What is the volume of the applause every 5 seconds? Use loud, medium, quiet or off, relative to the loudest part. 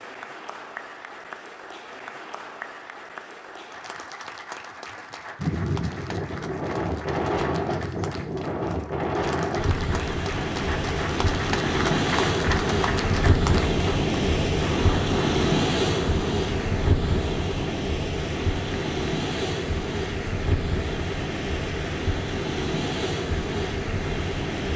medium, medium, loud, medium, medium.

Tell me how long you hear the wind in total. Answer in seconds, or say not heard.
19 s.